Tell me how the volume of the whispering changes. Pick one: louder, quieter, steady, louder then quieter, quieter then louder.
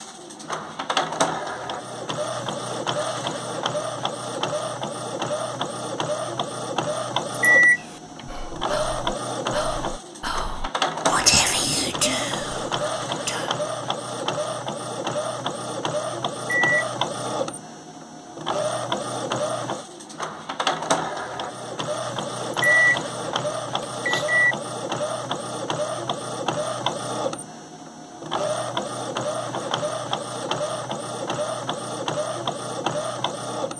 louder then quieter.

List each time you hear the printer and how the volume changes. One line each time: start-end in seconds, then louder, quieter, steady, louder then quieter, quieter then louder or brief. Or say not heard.
0.0-33.7 steady.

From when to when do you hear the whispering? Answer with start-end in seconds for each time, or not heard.
7.8-13.6.